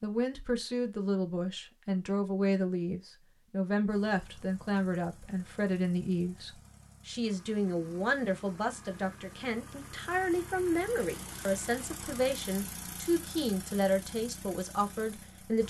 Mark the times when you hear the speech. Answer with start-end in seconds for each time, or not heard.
0.0-15.6.